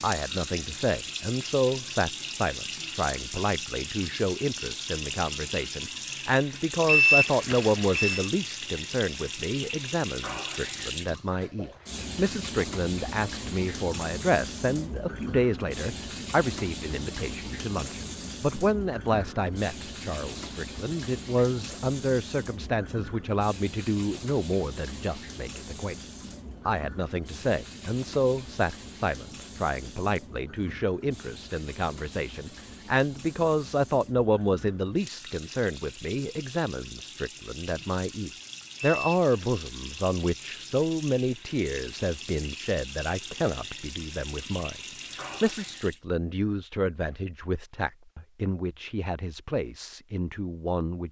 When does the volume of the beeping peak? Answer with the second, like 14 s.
7 s.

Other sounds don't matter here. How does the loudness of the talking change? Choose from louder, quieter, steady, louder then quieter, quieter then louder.
steady.